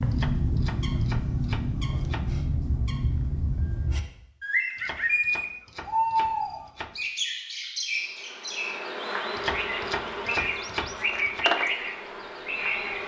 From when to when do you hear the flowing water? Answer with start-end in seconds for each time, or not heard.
not heard.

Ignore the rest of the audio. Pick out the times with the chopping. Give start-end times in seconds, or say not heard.
0.1-2.3, 4.8-7.0, 9.3-11.4.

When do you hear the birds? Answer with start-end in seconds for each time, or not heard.
0.0-8.8, 9.5-13.0.